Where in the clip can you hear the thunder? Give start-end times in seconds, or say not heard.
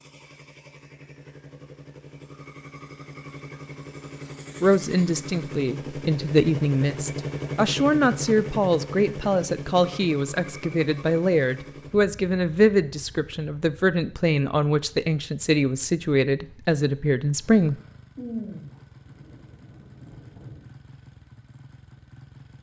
18.1-20.6.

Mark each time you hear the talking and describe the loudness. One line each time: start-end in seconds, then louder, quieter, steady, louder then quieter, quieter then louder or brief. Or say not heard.
4.6-17.8 steady.